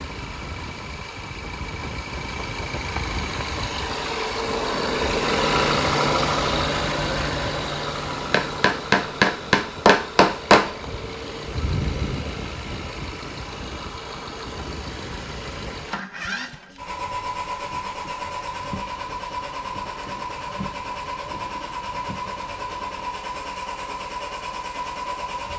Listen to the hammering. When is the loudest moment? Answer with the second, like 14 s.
10 s.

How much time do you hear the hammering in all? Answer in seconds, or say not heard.
2 s.